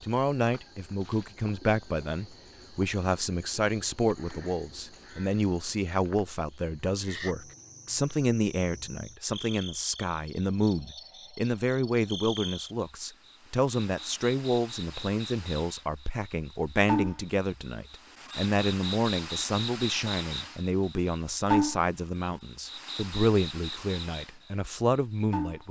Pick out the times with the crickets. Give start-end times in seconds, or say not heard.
0.0-25.6.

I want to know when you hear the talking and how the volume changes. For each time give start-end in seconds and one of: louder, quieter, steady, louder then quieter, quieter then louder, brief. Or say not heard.
0.0-25.6 steady.